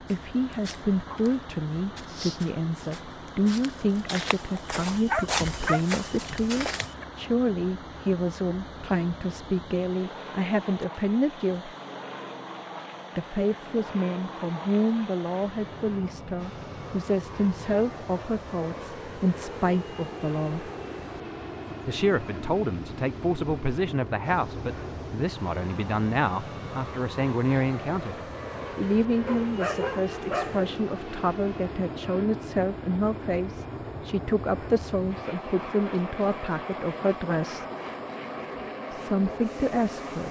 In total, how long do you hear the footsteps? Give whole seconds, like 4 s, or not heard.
7 s.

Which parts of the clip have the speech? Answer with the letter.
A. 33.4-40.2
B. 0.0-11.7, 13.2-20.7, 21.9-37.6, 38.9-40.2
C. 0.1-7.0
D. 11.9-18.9
B.